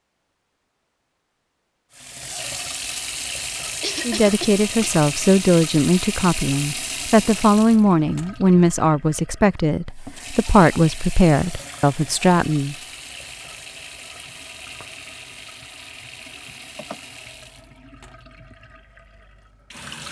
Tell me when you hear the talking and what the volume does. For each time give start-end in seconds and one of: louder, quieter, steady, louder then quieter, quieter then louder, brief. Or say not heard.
4.0-12.8 steady.